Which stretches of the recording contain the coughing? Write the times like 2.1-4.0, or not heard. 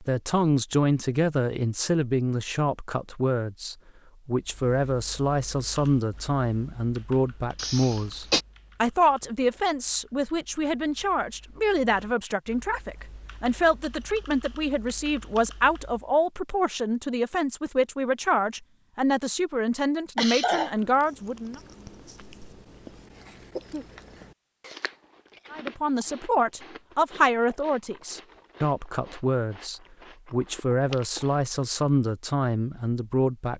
7.5-8.4, 20.1-20.7, 23.6-24.1.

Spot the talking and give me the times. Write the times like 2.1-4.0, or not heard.
0.0-21.6, 25.5-33.5.